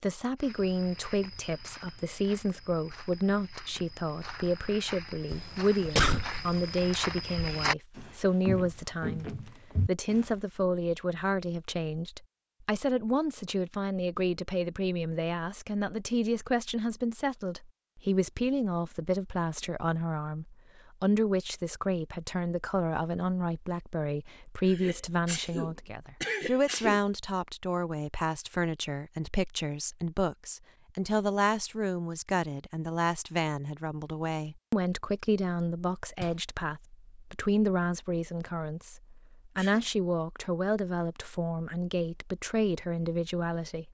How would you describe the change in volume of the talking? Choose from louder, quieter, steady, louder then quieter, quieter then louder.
steady.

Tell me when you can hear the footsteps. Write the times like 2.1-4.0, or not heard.
0.4-10.3.